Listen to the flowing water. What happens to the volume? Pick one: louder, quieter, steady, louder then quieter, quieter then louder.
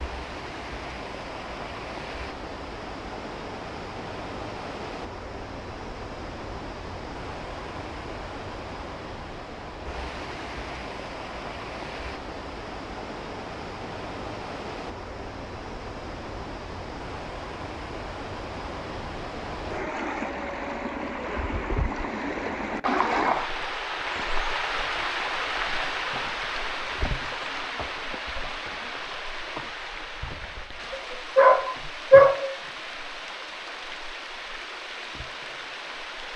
louder then quieter.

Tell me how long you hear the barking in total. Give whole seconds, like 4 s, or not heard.
2 s.